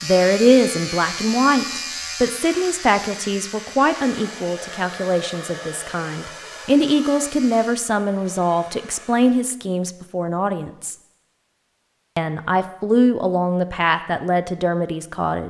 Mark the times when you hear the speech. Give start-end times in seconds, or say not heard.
0.0-10.9, 12.2-15.4.